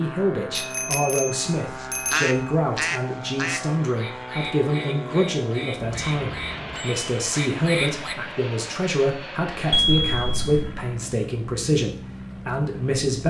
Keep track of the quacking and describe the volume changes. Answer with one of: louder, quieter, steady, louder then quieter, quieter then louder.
quieter.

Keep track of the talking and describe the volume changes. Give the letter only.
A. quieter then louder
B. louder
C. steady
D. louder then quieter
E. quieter
C.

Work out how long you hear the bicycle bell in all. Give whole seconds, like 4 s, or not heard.
4 s.